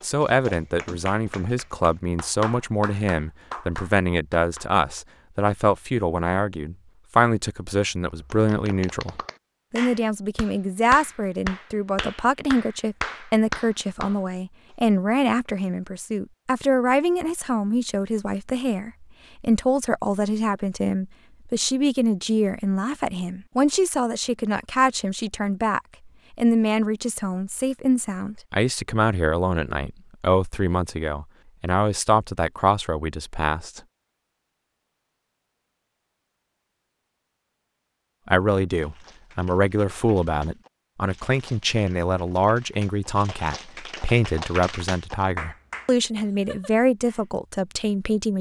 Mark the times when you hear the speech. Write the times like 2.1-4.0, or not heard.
0.0-33.8, 38.2-48.3.